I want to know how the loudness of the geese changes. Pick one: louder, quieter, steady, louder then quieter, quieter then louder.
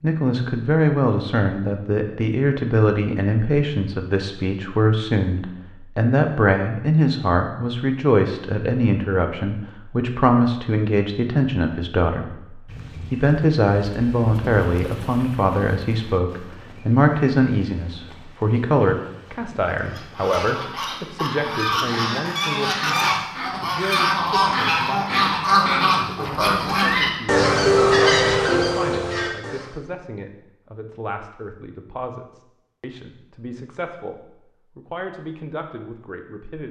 louder.